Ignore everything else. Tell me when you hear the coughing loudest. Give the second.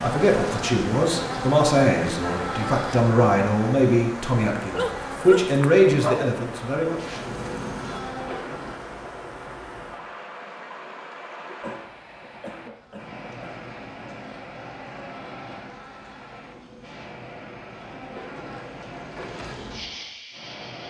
12 s.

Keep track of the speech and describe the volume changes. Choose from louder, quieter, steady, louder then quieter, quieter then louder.
steady.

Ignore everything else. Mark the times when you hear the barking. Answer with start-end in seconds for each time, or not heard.
4.8-6.3.